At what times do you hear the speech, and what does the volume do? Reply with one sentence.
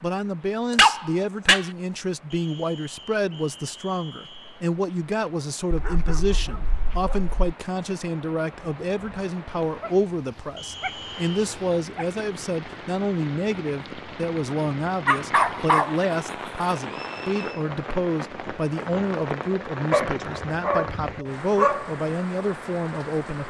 You can hear the speech from 0.0 to 23.4 s, at a steady volume.